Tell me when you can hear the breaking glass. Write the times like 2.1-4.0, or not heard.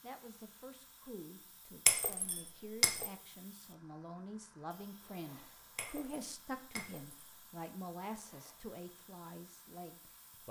1.9-3.1, 5.8-7.3.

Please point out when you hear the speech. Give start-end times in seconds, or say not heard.
0.0-10.4.